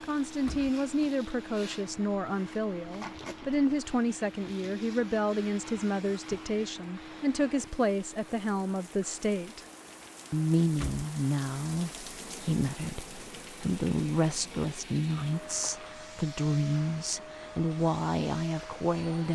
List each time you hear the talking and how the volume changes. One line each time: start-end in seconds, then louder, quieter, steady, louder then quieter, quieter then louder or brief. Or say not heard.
0.0-9.6 steady
10.3-19.3 steady.